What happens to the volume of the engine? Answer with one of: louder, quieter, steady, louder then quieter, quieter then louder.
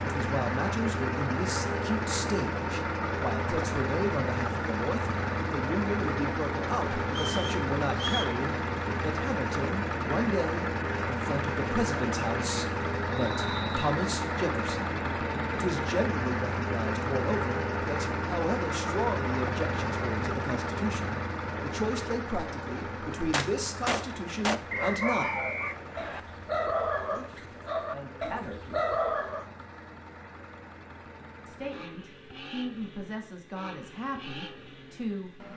quieter.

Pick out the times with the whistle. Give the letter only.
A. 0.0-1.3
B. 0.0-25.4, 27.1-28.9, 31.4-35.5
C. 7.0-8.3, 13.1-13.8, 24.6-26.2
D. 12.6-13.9
C.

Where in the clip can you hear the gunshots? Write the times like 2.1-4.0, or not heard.
23.3-24.6.